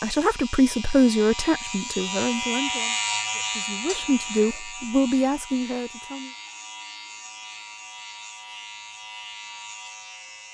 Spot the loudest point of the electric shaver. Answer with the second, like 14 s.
3 s.